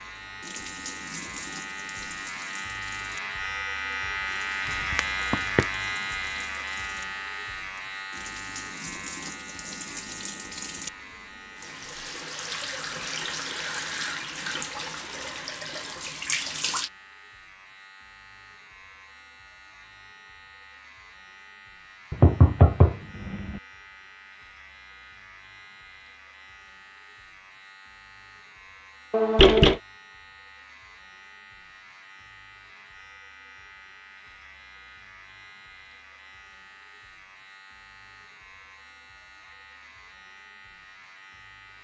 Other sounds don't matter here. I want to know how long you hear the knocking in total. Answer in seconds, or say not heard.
3 s.